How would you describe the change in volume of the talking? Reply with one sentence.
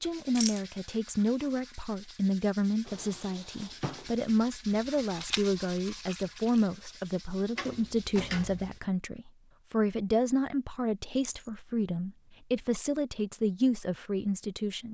The volume of the talking stays about the same.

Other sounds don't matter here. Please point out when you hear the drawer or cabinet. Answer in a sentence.
You can hear the drawer or cabinet from 2.9 to 4.1 s and from 7.5 to 8.8 s.